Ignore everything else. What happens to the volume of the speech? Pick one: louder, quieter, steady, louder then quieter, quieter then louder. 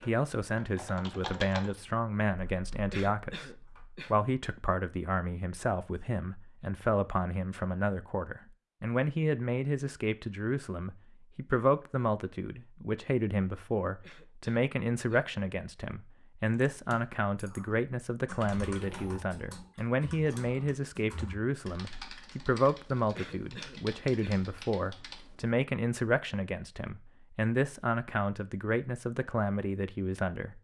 steady.